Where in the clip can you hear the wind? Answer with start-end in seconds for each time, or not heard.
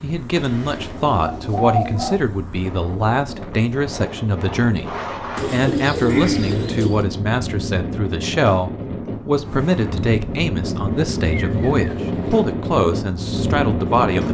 0.0-14.2.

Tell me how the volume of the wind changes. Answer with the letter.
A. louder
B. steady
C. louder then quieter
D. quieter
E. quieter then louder
A.